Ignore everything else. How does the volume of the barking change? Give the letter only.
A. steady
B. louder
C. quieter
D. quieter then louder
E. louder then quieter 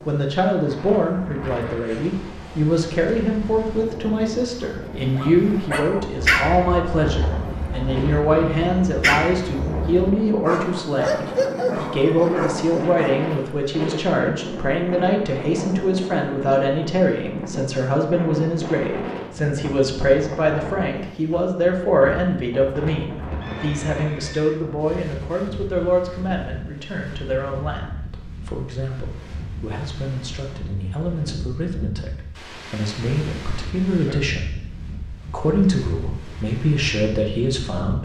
D.